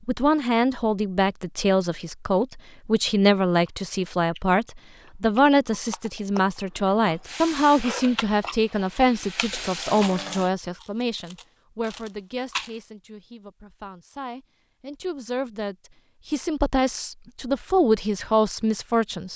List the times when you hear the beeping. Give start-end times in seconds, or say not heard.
not heard.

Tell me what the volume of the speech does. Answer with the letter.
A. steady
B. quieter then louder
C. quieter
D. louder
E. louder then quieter
B.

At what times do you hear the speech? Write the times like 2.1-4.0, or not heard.
0.1-19.3.